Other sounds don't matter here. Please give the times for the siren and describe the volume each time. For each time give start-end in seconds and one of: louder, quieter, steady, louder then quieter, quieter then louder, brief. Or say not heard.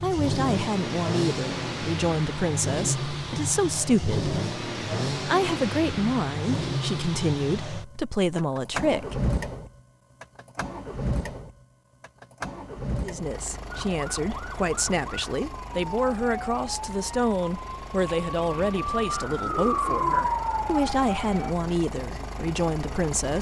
13.7-21.6 louder.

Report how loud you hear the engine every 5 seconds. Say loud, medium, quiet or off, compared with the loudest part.
loud, loud, medium, quiet, medium.